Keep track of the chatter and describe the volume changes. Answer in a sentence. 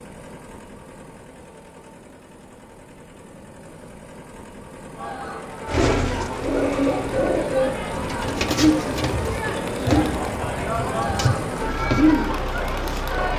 The loudness of the chatter goes up.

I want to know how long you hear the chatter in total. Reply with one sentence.
You can hear the chatter for 8 seconds altogether.